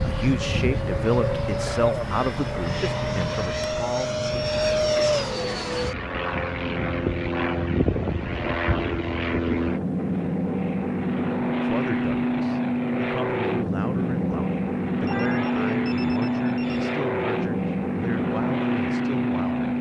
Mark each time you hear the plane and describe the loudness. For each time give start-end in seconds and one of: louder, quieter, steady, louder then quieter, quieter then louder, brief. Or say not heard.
0.0-19.7 steady.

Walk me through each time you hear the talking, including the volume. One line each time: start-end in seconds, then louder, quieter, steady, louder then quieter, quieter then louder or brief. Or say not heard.
0.0-4.2 quieter
11.6-19.6 steady.